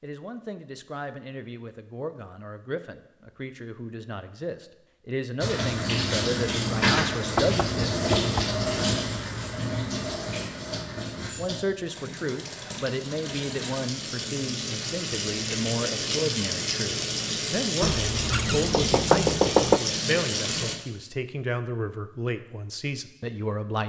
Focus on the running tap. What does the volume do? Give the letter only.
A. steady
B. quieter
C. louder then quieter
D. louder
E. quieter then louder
E.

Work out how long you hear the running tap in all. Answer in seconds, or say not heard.
15 s.